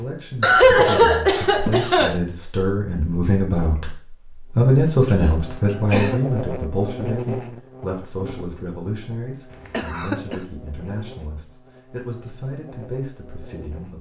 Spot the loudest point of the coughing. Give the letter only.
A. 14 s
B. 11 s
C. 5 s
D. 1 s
D.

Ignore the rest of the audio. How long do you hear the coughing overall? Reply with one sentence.
You can hear the coughing for 4 seconds altogether.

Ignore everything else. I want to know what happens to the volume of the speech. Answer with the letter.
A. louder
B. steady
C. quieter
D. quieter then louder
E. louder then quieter
E.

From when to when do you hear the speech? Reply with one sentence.
The speech can be heard from 0.0 to 13.9 s.